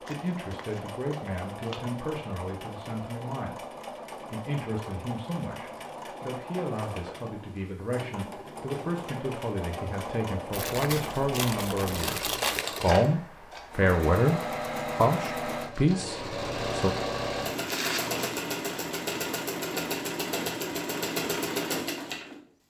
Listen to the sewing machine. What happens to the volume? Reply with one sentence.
The volume of the sewing machine goes up.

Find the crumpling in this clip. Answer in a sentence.
The crumpling can be heard from 0.1 to 2.0 s, from 10.5 to 12.7 s and from 17.6 to 18.2 s.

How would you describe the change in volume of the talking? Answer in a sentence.
The volume of the talking goes up.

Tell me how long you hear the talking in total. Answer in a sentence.
You can hear the talking for 17 seconds altogether.